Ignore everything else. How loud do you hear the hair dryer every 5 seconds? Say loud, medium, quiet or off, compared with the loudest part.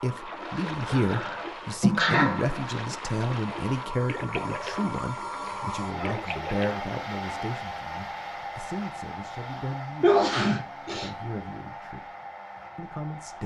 loud, loud, medium.